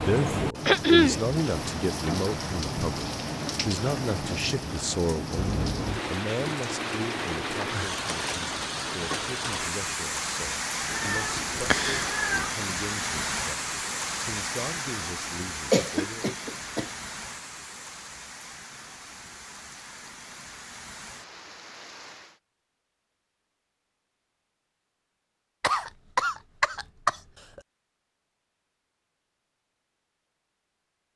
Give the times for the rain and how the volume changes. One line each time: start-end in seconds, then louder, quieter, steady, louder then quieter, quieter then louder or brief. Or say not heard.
0.0-22.4 quieter.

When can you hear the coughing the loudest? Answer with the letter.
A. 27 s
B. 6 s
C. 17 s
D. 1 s
D.